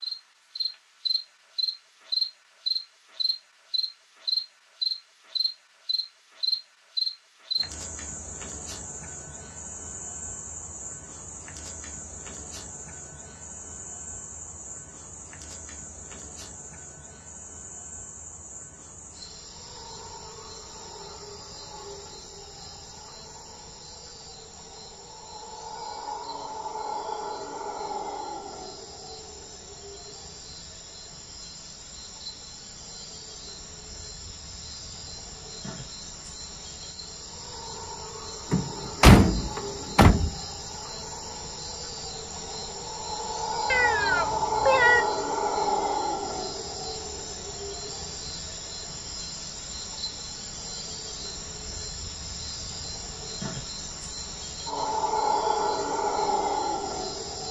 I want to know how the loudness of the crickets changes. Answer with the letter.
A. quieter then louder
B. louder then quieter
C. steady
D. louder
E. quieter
A.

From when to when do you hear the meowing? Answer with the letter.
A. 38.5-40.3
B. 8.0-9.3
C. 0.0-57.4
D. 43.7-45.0
D.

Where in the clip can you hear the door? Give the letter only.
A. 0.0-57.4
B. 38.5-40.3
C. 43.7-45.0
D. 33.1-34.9
B.